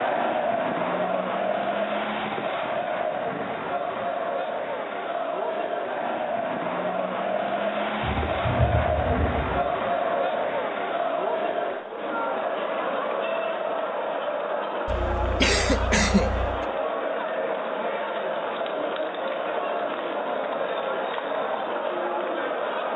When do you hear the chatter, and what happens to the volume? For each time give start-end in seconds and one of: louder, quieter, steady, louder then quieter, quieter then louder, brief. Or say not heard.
0.0-22.9 steady.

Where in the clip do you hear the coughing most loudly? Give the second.
16 s.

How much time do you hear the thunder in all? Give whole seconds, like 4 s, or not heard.
2 s.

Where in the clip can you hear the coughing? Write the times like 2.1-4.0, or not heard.
14.8-16.6.